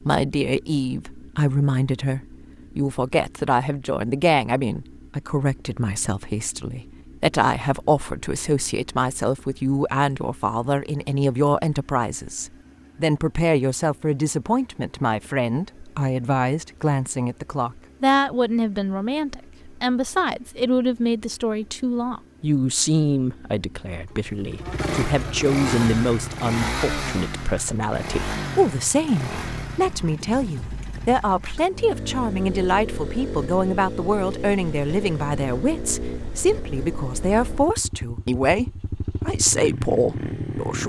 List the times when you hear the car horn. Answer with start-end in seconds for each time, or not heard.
not heard.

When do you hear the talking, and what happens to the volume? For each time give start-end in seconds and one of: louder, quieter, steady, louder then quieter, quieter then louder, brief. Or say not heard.
0.0-40.8 steady.